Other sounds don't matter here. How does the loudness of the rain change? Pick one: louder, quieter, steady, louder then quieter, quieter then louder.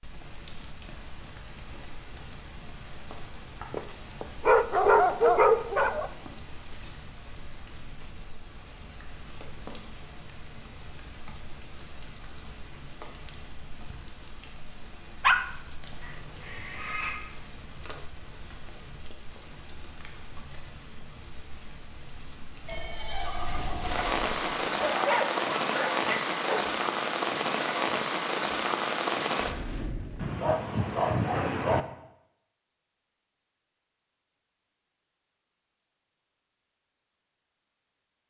louder.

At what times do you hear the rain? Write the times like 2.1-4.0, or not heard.
0.0-30.4.